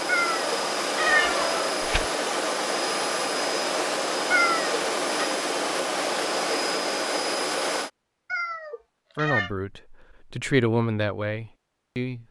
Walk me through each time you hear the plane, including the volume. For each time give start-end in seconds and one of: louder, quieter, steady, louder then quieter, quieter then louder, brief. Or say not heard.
0.0-7.9 steady.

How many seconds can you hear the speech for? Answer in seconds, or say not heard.
3 s.